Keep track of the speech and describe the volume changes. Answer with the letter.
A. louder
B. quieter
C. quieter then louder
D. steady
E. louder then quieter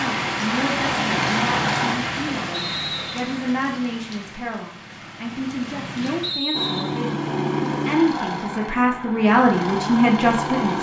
A.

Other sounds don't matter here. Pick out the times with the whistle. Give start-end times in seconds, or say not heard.
2.5-3.4, 6.2-7.0.